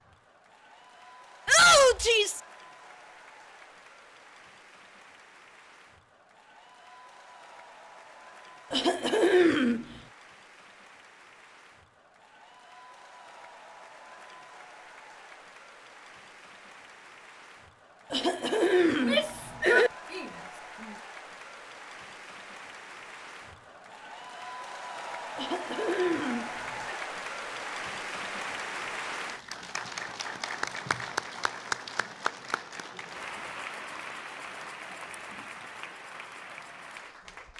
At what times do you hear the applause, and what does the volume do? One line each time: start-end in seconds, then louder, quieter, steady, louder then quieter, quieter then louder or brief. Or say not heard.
0.0-37.5 louder.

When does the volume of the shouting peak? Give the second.
2 s.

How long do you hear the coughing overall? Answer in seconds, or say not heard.
5 s.